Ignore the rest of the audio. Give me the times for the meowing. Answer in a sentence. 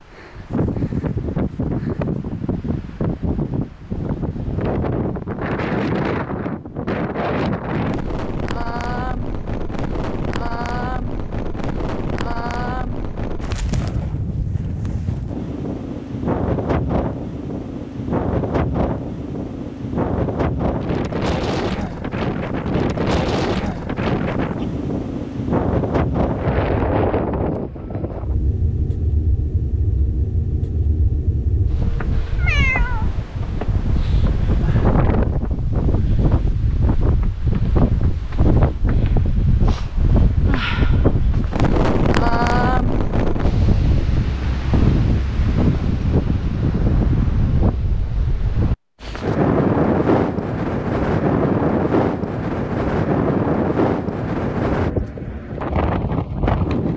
The meowing can be heard from 32.4 to 33.1 s.